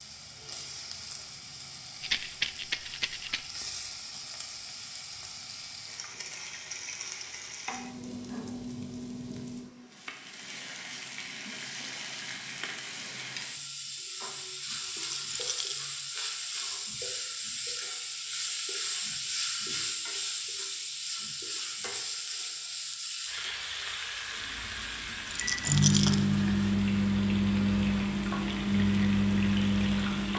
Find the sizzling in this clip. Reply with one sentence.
The sizzling can be heard from 0.0 to 30.3 s.